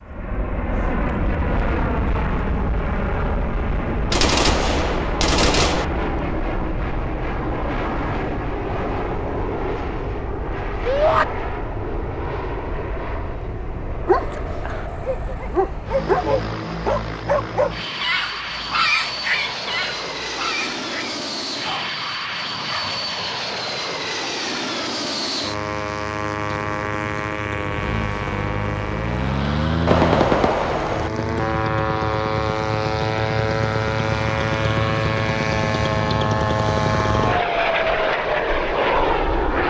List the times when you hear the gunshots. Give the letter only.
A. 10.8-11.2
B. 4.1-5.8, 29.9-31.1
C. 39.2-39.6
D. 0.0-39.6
B.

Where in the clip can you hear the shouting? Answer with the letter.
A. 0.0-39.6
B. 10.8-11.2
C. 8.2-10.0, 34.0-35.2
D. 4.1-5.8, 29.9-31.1
B.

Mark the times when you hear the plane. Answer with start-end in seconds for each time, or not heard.
0.0-39.6.